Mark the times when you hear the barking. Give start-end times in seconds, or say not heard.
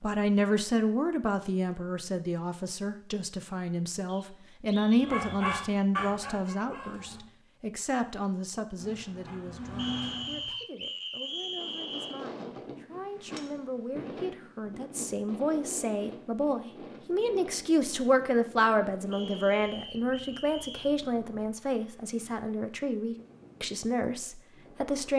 5.0-7.2, 8.8-10.6.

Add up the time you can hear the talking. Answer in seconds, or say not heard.
25 s.